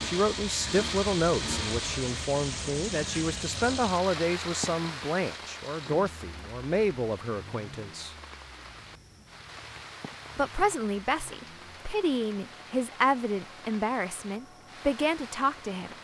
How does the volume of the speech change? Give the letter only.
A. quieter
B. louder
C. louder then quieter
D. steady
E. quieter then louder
D.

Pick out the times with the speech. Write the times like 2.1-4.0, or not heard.
0.0-8.2, 10.3-15.9.